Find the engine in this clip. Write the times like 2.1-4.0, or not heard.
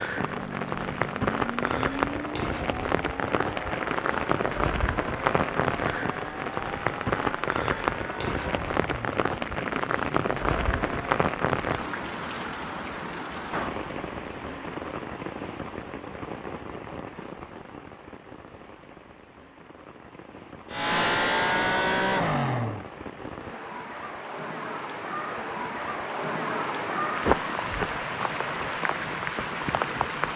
0.1-11.2, 20.7-22.9.